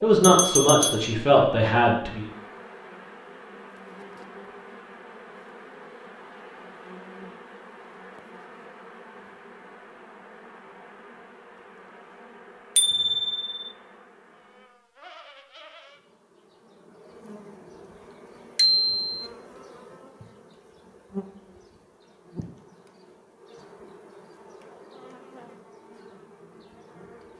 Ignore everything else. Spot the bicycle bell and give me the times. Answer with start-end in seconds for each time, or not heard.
0.2-1.1, 12.8-13.7, 18.6-19.1.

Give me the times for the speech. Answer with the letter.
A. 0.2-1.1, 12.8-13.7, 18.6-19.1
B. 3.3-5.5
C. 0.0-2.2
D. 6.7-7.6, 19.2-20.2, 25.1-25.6
C.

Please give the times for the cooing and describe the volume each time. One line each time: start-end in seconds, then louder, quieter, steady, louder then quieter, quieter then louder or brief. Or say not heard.
not heard.